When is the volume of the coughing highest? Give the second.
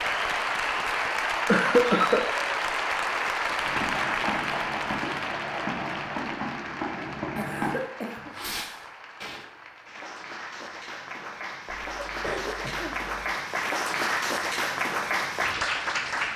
2 s.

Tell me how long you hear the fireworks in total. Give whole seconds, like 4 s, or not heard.
6 s.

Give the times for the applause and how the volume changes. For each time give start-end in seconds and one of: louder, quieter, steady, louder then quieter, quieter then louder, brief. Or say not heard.
0.0-16.3 quieter then louder.